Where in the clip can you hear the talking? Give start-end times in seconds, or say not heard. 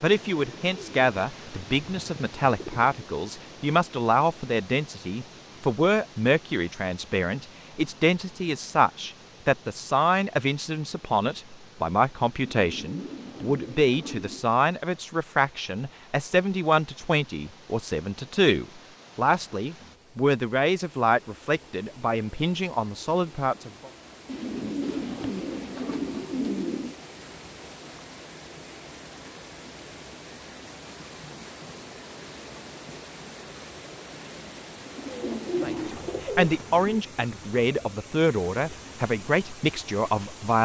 0.0-23.9, 35.6-40.5.